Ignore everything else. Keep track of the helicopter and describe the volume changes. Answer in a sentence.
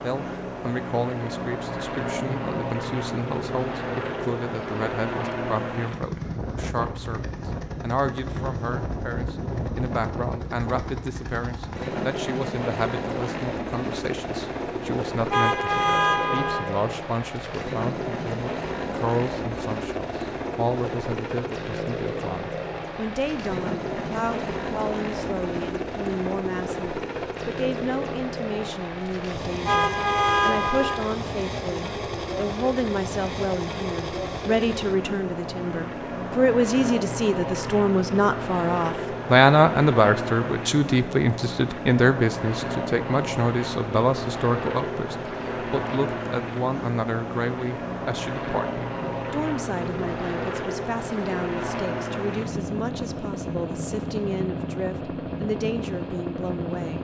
The loudness of the helicopter stays about the same.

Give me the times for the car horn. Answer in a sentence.
You can hear the car horn from 15.3 to 16.7 s and from 29.6 to 31.1 s.